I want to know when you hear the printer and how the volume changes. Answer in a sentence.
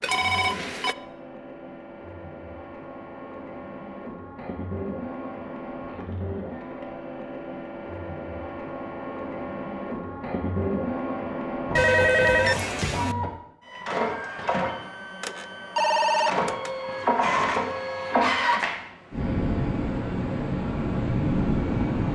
The printer can be heard from 0.0 to 22.1 s, getting louder.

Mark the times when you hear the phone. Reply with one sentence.
You can hear the phone from 0.0 to 0.9 s, from 11.8 to 13.2 s and from 15.2 to 16.7 s.